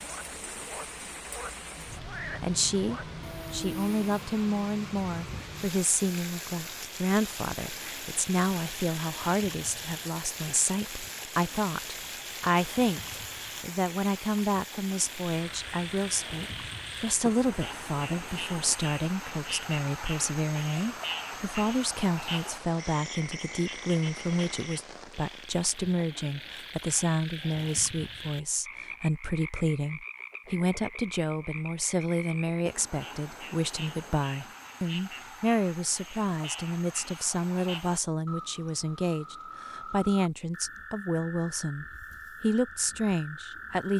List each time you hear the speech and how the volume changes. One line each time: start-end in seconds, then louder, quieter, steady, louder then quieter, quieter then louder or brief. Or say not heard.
2.2-43.9 steady.